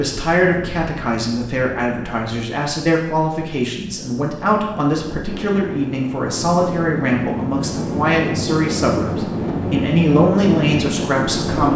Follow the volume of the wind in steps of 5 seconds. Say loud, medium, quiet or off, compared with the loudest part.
quiet, loud, loud.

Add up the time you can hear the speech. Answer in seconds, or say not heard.
12 s.